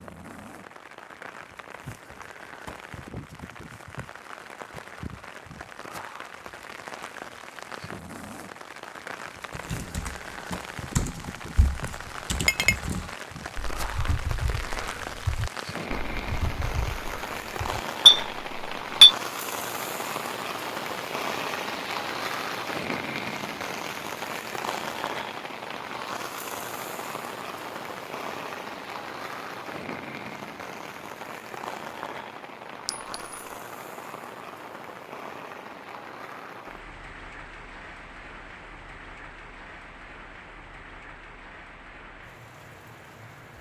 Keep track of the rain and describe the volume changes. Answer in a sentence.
The loudness of the rain goes up, then down.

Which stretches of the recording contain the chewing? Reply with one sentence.
The chewing can't be heard in this clip.